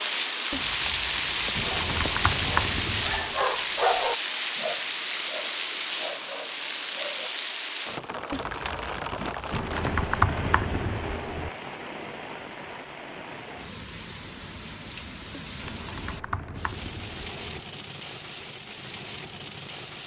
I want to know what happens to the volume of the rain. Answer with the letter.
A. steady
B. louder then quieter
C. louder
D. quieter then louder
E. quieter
E.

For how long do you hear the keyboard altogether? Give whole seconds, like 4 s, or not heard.
6 s.